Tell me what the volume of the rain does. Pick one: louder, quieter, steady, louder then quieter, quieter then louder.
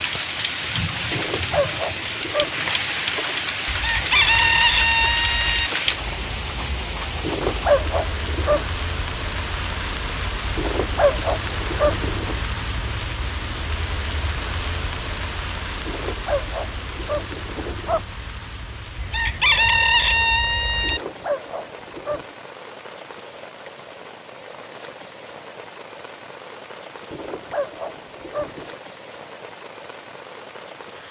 quieter.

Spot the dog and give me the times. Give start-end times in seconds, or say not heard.
1.1-2.6, 7.2-8.7, 10.6-12.4, 15.8-18.0, 20.8-22.4, 27.1-28.8.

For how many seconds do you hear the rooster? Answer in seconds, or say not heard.
4 s.